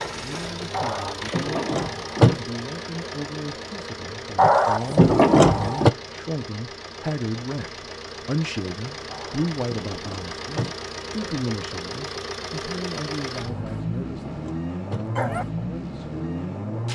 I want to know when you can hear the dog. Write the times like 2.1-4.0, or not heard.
0.7-2.4, 4.3-5.9, 9.1-10.8, 13.4-15.4.